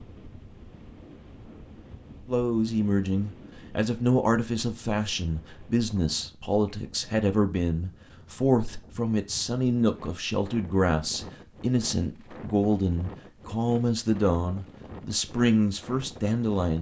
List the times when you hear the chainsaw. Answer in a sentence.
You can't hear the chainsaw here.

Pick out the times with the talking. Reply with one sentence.
You can hear the talking from 2.2 to 16.7 s.